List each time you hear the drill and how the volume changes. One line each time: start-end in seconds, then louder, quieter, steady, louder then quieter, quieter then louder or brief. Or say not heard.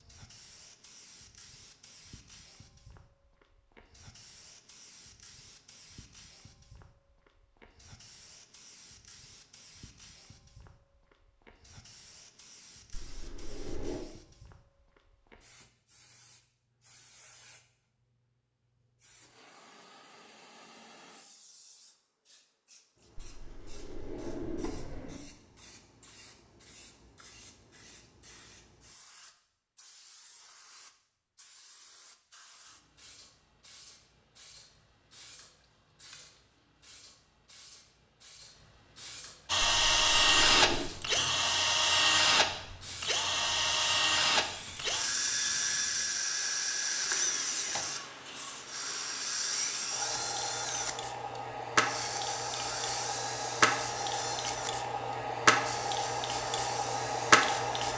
39.5-57.9 quieter.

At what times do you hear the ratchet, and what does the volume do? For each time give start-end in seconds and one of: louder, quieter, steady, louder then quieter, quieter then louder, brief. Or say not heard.
not heard.